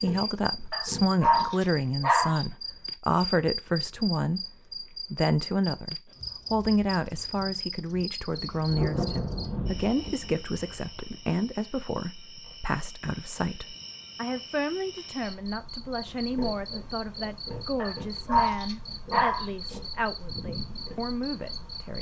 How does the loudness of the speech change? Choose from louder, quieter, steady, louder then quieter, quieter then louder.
quieter.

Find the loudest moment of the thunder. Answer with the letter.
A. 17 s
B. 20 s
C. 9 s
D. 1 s
C.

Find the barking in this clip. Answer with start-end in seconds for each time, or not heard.
0.7-2.4, 17.8-19.8.